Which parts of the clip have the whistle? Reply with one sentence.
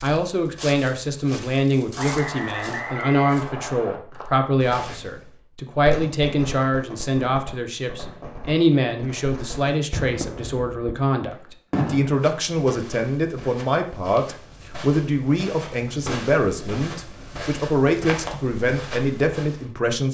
The whistle can be heard from 1.9 to 4.0 s.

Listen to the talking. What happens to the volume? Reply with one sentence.
The volume of the talking stays about the same.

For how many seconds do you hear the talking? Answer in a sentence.
You can hear the talking for 20 seconds altogether.